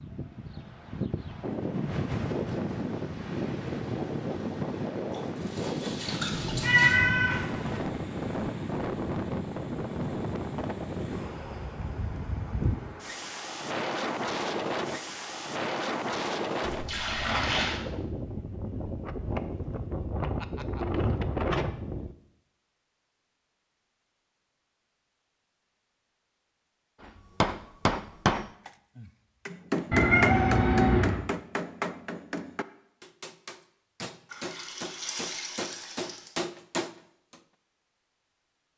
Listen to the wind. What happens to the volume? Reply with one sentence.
The loudness of the wind stays about the same.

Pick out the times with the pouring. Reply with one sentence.
The pouring can be heard from 5.1 to 7.0 s, from 16.6 to 17.8 s and from 34.3 to 36.3 s.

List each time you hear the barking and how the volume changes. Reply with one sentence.
The barking can't be heard in this clip.